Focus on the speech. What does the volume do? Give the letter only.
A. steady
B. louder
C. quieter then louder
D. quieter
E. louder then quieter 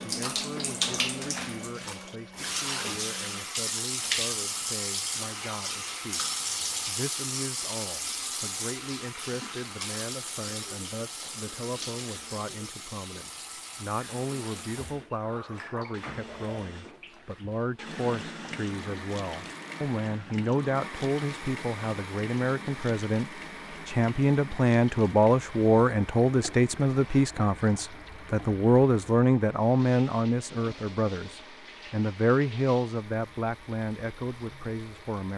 B.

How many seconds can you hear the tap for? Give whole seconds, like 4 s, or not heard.
35 s.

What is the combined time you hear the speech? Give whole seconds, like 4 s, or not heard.
35 s.